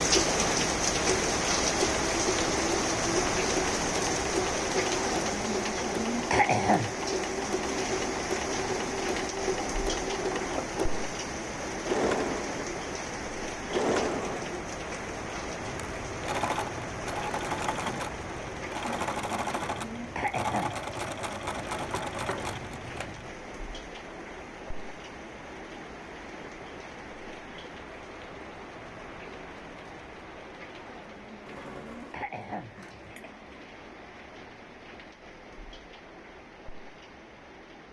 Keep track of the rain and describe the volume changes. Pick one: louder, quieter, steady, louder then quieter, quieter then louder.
quieter.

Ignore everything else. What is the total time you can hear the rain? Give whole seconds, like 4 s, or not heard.
38 s.